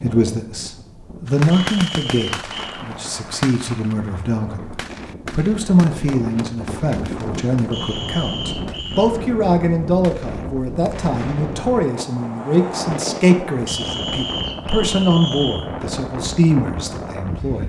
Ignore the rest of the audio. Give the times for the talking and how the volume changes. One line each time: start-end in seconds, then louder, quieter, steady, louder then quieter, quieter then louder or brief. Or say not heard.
0.0-17.6 steady.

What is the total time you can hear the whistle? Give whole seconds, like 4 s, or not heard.
5 s.